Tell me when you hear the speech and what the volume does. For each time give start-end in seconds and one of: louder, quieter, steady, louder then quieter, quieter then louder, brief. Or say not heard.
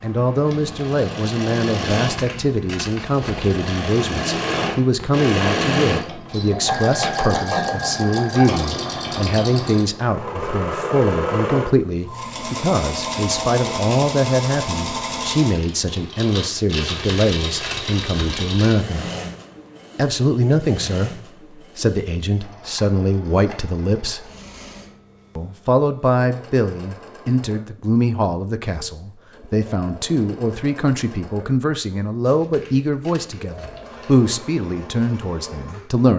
0.0-19.1 steady
19.9-24.3 quieter then louder
25.4-36.1 steady.